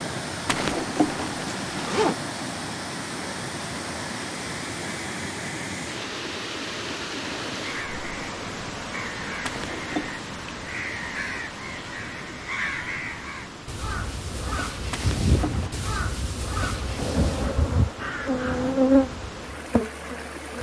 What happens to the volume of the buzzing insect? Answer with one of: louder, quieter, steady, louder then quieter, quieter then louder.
louder then quieter.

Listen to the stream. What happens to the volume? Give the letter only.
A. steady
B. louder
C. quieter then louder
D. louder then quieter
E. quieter
E.